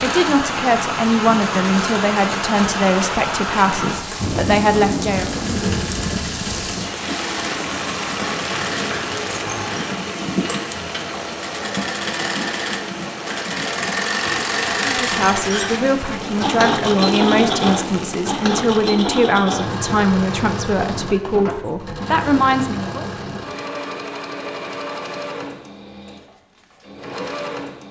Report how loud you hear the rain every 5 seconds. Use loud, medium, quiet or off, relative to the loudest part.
loud, loud, medium, medium, off, off.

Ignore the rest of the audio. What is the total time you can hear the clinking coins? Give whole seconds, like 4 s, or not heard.
3 s.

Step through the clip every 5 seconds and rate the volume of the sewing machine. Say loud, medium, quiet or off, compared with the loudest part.
medium, medium, loud, loud, medium, medium.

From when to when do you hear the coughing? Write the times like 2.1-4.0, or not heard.
not heard.